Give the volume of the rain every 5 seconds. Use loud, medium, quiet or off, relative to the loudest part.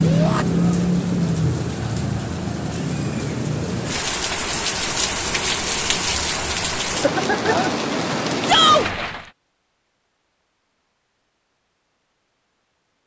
loud, loud, off.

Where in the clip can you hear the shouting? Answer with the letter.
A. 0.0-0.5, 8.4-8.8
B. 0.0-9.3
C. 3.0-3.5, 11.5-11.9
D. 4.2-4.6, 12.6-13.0
A.